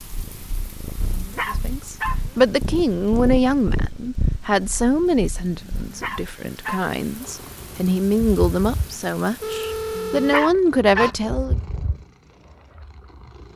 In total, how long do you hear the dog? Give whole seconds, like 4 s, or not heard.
4 s.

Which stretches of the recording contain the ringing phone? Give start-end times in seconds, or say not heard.
9.4-10.5.